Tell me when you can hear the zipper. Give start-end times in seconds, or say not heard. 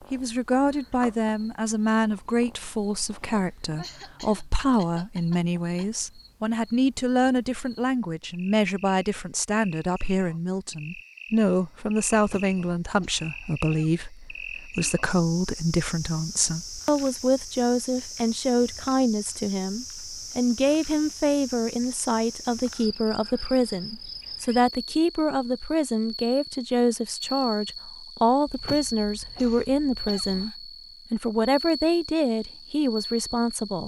not heard.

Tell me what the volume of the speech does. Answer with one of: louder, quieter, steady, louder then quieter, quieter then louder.
steady.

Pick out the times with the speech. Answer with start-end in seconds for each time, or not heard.
0.1-33.8.